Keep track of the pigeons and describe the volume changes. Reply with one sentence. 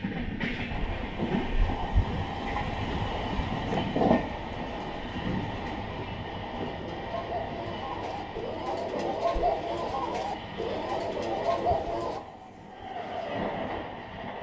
The loudness of the pigeons goes up.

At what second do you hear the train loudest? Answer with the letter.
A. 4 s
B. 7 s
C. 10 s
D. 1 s
A.